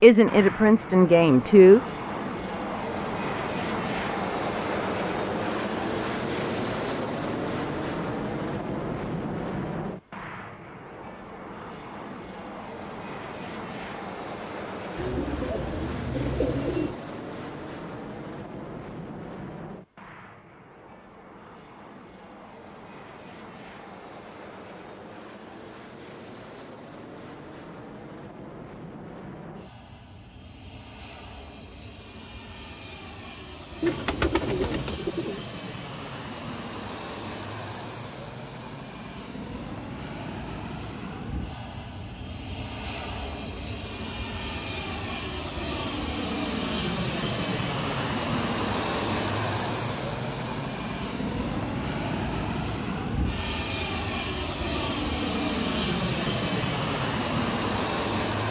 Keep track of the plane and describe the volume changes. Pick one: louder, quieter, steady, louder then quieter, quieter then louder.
quieter then louder.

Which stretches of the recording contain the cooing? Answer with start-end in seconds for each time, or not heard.
14.9-17.0, 33.8-35.4.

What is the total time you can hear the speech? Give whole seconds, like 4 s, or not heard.
2 s.